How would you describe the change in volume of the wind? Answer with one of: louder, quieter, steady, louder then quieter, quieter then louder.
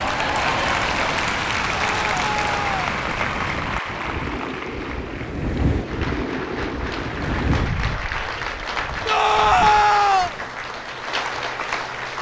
louder then quieter.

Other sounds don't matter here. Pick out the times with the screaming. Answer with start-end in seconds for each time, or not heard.
1.6-2.7, 9.1-10.3.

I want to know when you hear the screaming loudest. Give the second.
10 s.